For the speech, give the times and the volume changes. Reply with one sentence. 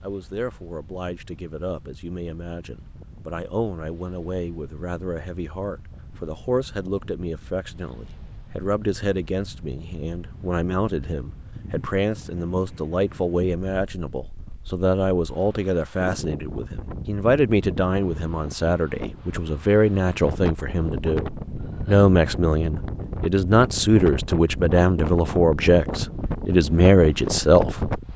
You can hear the speech from 0.0 to 27.7 s, getting louder.